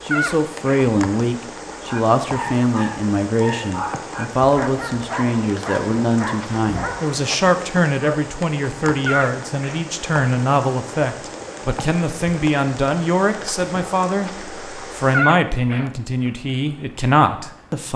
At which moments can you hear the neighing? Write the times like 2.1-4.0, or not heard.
0.1-0.9, 9.1-9.8, 15.1-15.9.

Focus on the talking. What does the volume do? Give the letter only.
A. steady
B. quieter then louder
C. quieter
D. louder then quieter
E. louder
A.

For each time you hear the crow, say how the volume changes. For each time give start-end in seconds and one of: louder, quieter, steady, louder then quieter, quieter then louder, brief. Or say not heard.
not heard.